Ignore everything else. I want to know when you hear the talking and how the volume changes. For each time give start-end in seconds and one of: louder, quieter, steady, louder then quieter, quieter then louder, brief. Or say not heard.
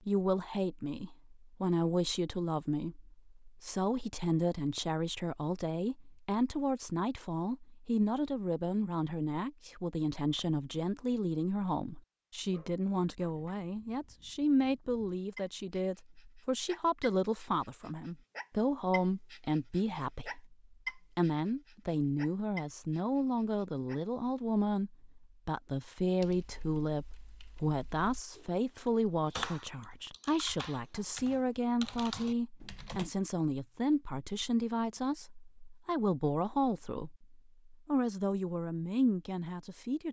0.1-40.0 steady.